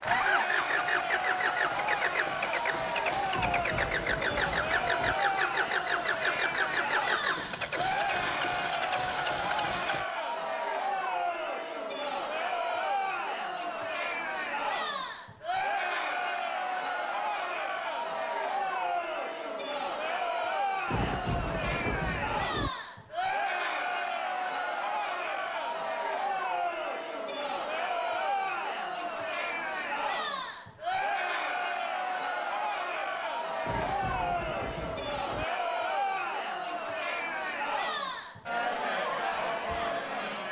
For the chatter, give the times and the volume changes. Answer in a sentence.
The chatter can be heard from 0.0 to 40.4 s, at a steady volume.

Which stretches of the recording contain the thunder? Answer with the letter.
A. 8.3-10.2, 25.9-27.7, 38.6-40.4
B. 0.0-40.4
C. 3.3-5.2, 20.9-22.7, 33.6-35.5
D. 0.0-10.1
C.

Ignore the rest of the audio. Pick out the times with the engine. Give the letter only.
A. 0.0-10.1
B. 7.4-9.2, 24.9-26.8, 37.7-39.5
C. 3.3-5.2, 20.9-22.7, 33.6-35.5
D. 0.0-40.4
A.